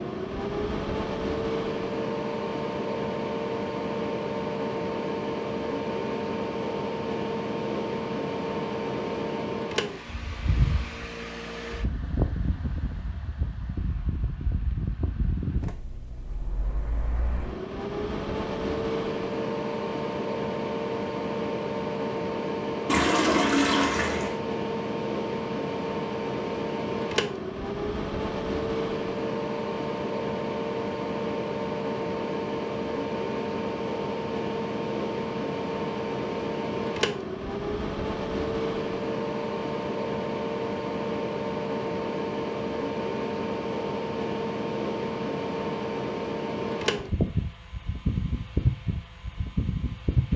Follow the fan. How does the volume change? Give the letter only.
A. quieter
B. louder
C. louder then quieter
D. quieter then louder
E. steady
E.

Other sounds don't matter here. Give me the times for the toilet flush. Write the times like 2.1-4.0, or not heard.
22.9-24.4.